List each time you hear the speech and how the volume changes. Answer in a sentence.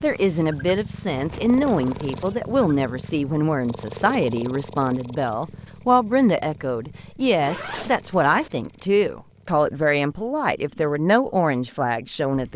The speech can be heard from 0.0 to 12.5 s, at a steady volume.